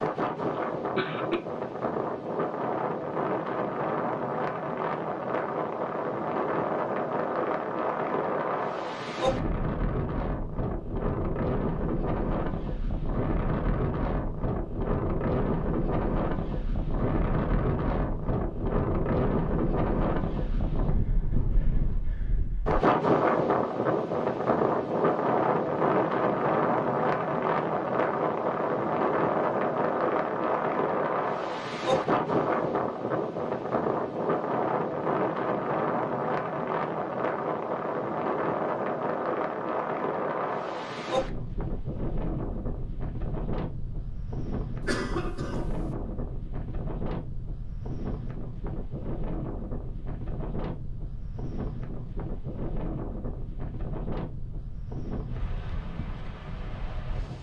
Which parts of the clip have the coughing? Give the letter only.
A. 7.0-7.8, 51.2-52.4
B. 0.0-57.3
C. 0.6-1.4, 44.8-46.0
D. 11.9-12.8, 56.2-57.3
C.